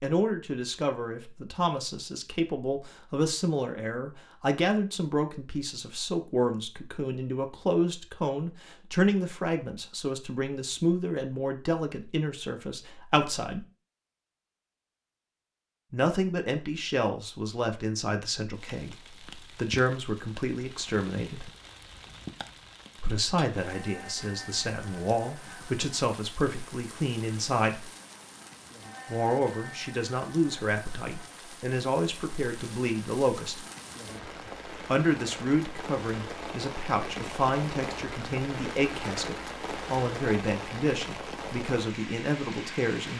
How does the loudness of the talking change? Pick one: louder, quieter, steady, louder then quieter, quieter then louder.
steady.